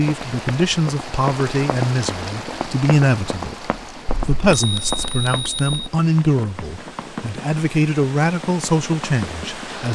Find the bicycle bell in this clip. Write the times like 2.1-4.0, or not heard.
4.0-5.8.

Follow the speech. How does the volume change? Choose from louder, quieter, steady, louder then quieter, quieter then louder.
steady.